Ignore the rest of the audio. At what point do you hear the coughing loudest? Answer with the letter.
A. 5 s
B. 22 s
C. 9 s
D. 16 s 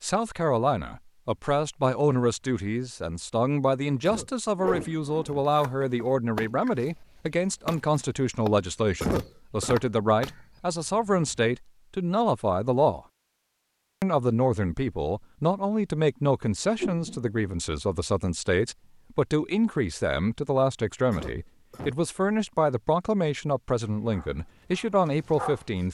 C.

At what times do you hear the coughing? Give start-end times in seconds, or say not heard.
4.0-5.5, 9.0-9.8, 21.1-21.9.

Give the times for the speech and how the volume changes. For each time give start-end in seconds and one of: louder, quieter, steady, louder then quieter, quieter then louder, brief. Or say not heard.
0.0-13.0 steady
14.0-25.8 steady.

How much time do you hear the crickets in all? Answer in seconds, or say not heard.
not heard.